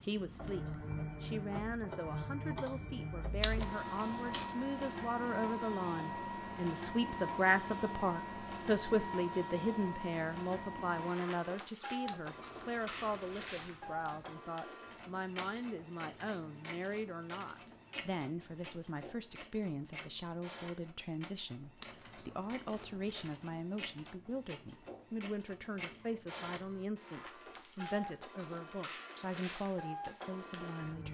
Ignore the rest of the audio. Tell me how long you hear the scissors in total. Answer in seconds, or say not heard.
5 s.